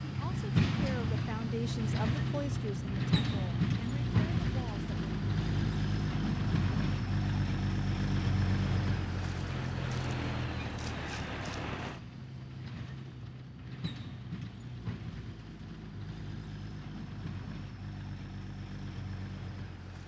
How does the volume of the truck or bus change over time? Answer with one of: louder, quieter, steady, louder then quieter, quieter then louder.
quieter.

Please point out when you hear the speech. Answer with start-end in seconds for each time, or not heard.
0.0-4.9.